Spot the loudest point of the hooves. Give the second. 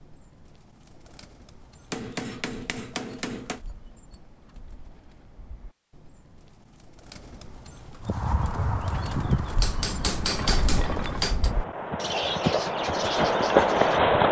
14 s.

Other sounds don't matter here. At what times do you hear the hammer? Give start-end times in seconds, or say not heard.
1.9-3.6, 9.6-11.6.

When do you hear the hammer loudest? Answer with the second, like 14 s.
10 s.